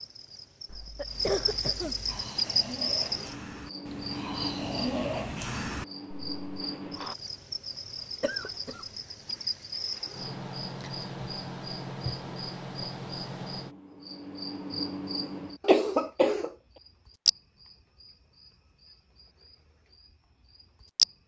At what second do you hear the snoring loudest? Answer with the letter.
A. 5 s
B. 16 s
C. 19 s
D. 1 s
A.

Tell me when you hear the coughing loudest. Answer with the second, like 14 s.
16 s.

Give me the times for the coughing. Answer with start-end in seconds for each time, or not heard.
0.7-2.1, 8.2-8.8, 15.6-16.5.